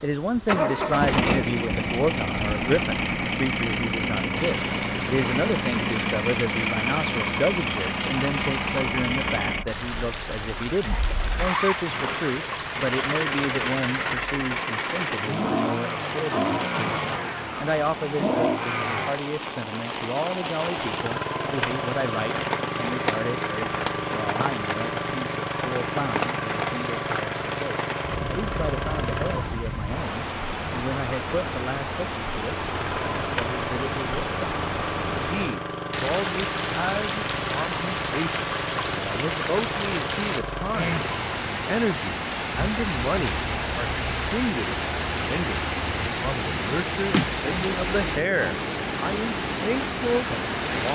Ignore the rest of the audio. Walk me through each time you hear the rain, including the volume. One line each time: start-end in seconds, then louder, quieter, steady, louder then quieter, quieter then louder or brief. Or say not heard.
0.0-50.9 louder.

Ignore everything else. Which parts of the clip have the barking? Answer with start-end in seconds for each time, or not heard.
not heard.